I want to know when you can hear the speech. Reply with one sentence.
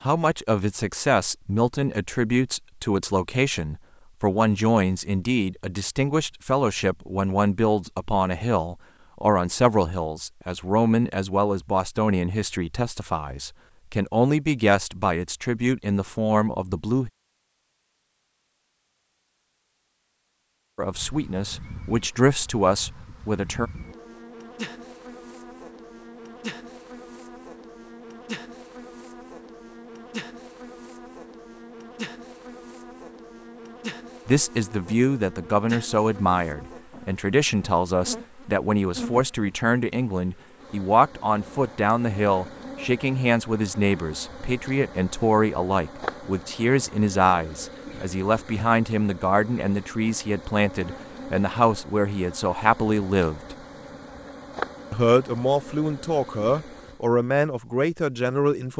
You can hear the speech from 0.0 to 17.1 s, from 20.8 to 23.7 s, from 34.2 to 53.5 s and from 54.9 to 58.7 s.